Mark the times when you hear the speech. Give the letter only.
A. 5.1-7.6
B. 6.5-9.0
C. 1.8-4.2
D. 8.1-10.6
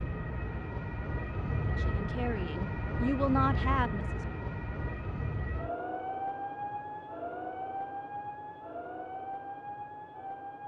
C.